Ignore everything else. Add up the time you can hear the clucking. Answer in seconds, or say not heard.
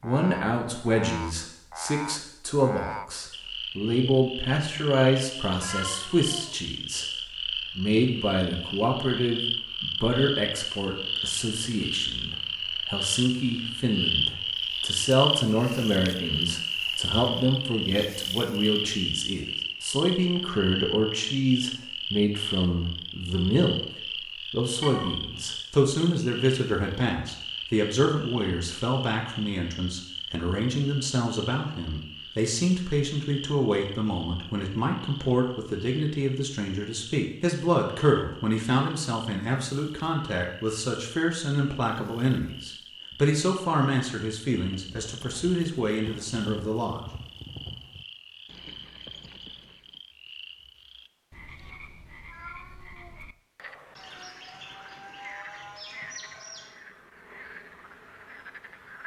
3 s.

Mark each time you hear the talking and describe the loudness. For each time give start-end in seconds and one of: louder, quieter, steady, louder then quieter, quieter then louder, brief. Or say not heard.
0.0-47.0 steady.